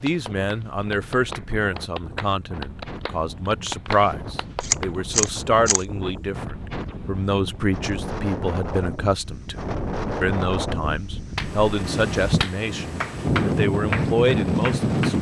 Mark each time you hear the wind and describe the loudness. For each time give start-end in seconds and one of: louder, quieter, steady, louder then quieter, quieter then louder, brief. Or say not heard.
0.0-15.1 louder.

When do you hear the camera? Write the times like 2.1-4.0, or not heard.
4.6-6.2.